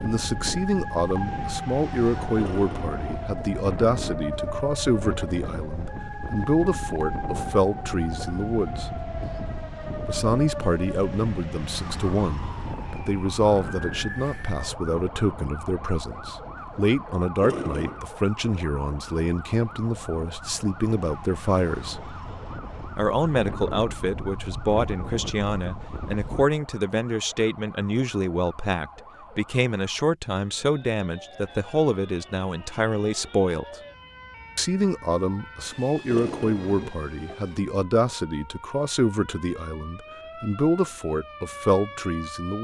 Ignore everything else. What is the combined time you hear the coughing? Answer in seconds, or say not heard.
3 s.